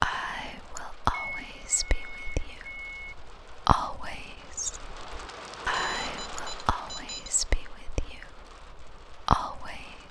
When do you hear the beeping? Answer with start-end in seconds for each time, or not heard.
1.1-3.1, 5.7-7.5.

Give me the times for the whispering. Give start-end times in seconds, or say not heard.
0.0-10.0.